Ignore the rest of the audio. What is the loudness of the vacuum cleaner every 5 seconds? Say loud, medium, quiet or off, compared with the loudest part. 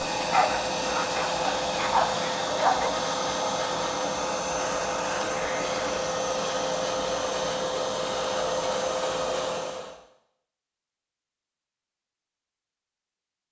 loud, loud, off.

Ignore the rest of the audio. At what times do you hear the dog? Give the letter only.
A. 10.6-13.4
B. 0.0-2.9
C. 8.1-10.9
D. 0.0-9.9
B.